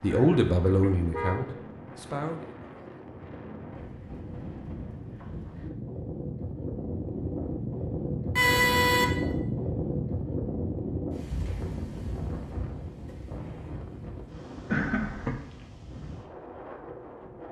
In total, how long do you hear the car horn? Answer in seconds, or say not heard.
3 s.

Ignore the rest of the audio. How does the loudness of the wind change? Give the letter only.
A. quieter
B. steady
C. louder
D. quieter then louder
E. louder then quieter
E.